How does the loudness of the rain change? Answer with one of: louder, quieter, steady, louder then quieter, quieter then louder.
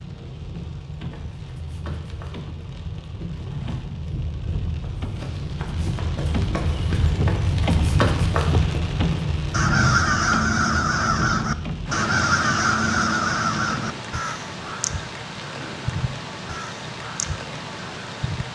louder then quieter.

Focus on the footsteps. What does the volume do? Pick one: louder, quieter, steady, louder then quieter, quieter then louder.
louder.